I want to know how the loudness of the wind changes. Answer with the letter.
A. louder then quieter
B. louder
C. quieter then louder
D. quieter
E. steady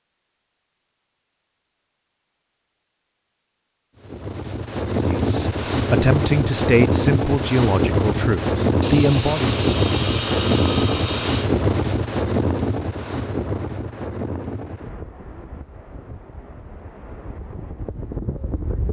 D.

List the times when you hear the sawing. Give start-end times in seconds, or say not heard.
8.8-11.5.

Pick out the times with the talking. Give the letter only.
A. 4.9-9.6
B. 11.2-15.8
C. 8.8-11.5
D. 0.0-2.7
A.